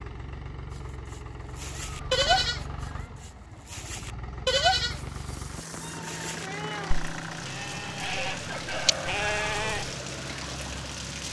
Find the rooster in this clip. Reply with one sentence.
You can hear the rooster from 8.2 to 9.7 s.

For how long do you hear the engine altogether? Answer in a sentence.
You can hear the engine for 11 seconds altogether.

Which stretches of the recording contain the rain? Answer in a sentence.
The rain can be heard from 4.8 to 11.2 s.